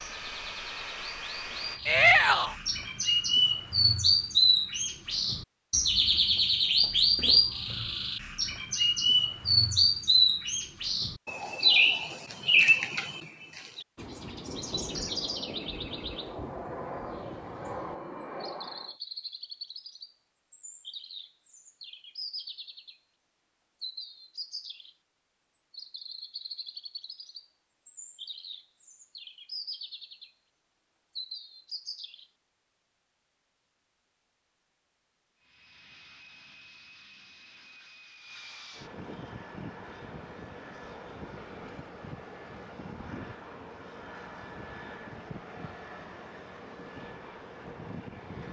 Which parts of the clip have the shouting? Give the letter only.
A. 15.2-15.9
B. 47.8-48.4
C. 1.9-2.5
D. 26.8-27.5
C.